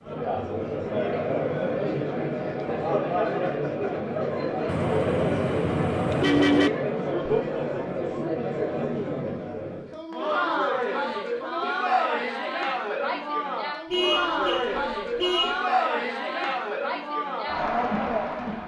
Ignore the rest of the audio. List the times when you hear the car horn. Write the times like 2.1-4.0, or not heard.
4.7-6.7, 13.9-15.6.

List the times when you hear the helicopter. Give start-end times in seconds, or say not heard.
not heard.